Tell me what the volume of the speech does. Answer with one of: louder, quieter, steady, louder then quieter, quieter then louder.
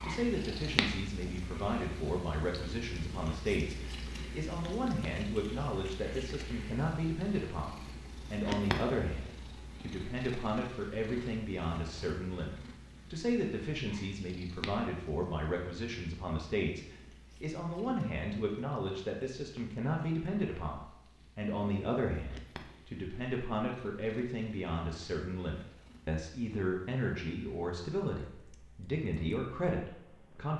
steady.